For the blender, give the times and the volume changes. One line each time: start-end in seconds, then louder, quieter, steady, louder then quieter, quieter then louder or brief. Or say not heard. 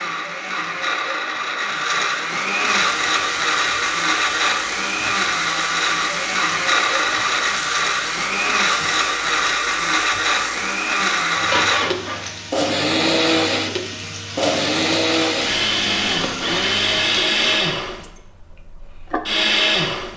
0.0-20.1 steady.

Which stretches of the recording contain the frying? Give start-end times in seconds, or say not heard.
2.8-17.6.